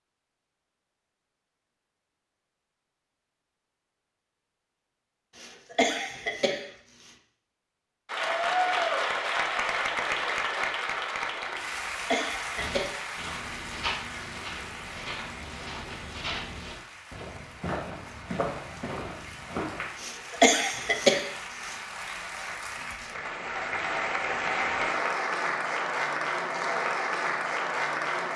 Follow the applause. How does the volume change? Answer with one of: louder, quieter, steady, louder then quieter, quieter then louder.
quieter then louder.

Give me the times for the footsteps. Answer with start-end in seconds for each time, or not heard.
12.6-19.9.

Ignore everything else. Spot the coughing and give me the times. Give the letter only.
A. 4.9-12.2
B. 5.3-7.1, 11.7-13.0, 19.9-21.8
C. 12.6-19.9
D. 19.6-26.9
B.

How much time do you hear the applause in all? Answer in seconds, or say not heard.
20 s.